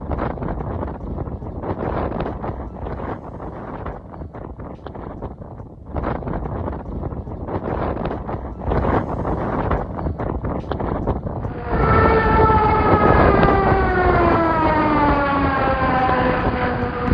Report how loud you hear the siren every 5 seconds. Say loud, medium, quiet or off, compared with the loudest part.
off, off, loud, loud.